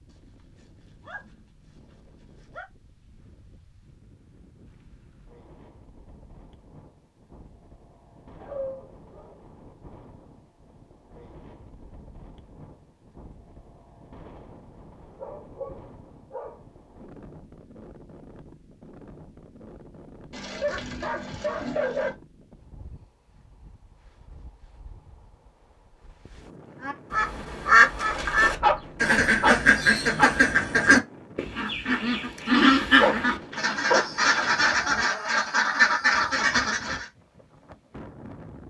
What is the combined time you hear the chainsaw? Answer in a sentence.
The chainsaw can't be heard in this clip.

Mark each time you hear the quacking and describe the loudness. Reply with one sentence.
You can hear the quacking from 26.8 to 37.0 s, at a steady volume.